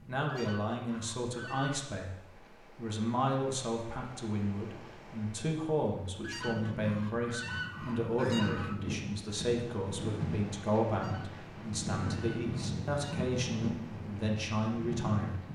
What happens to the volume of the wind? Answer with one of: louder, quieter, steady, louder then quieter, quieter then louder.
louder.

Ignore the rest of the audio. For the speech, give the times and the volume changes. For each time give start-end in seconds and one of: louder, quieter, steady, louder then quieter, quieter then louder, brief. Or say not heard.
0.1-2.1 brief
2.8-15.4 steady.